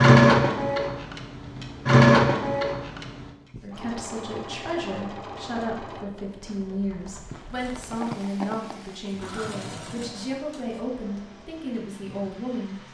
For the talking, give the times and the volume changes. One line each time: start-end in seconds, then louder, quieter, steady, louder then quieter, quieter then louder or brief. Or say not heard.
3.6-12.8 steady.